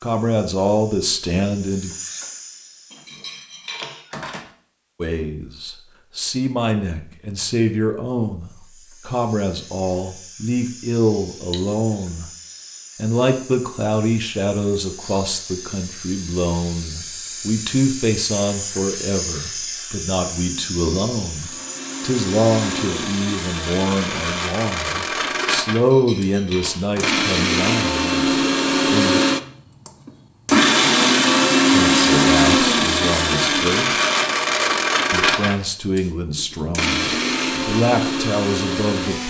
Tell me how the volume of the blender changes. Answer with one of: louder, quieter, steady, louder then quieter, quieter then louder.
louder then quieter.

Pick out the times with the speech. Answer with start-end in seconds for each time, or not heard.
0.0-1.9, 5.0-12.2, 12.9-29.2, 31.7-33.9, 35.1-39.2.